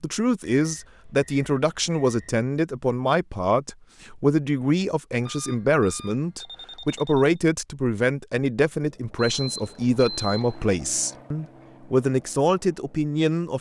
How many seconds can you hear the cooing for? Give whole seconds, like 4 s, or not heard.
not heard.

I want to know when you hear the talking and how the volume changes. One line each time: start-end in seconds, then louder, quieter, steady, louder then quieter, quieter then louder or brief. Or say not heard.
0.0-13.5 steady.